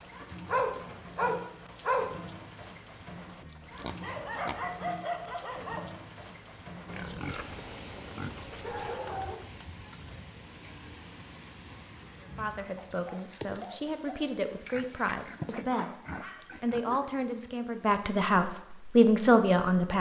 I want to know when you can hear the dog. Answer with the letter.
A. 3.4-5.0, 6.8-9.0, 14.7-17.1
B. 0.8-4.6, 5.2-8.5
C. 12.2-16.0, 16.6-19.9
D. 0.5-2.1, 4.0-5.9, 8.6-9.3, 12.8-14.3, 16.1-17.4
D.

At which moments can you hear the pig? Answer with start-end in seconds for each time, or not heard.
3.4-5.0, 6.8-9.0, 14.7-17.1.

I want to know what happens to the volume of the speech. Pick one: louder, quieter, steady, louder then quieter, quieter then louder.
louder.